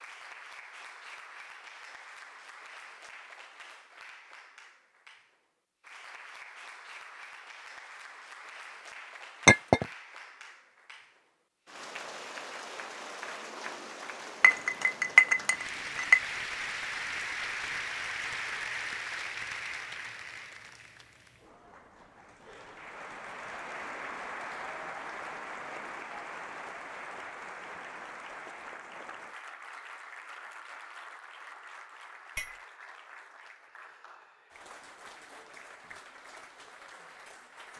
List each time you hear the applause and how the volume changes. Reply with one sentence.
You can hear the applause from 0.0 to 37.7 s, getting louder then quieter.